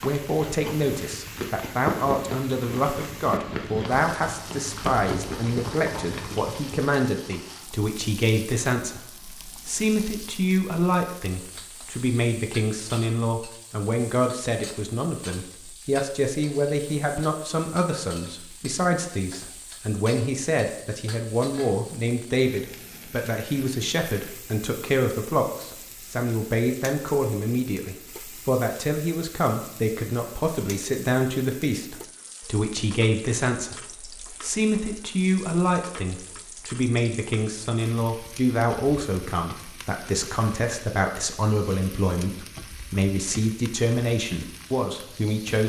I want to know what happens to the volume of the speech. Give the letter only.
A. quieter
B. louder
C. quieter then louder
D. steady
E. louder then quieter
D.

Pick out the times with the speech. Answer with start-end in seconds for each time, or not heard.
0.0-45.6.